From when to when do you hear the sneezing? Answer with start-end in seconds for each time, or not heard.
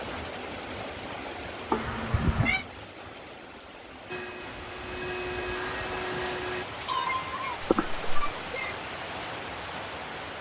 not heard.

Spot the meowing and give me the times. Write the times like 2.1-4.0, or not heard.
1.7-2.6, 6.8-8.8.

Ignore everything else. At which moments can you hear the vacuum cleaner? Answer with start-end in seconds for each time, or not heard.
4.0-6.7.